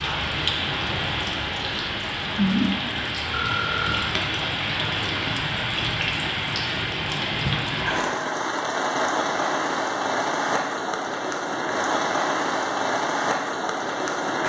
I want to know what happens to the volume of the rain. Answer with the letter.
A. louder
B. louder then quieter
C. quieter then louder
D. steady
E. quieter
D.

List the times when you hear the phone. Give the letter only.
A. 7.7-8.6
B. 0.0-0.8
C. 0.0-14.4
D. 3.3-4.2
D.